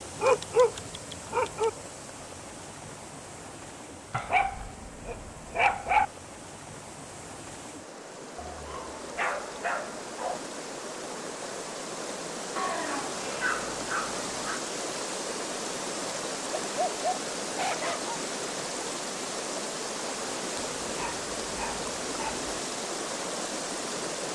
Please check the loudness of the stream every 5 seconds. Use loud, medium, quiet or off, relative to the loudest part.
medium, medium, loud, loud, loud.